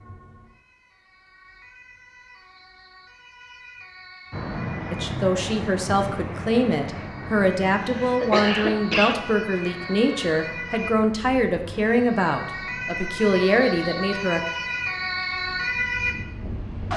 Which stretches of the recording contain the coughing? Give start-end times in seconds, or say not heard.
7.8-9.2.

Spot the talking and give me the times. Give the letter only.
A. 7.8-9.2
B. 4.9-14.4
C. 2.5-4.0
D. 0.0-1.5
B.